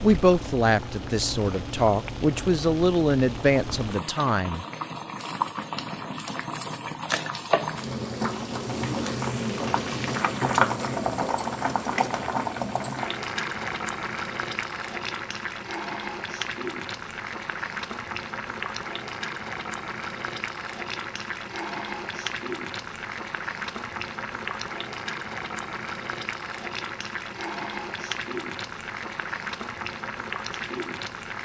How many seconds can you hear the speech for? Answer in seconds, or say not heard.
5 s.